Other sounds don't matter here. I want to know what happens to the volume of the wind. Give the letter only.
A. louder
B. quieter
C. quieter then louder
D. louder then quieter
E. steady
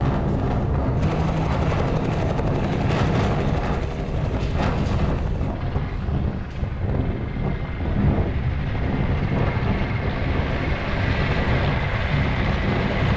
E.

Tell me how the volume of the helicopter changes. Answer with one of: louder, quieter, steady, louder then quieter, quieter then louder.
quieter then louder.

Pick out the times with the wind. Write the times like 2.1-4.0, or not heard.
0.0-13.1.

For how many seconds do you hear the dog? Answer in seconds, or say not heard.
not heard.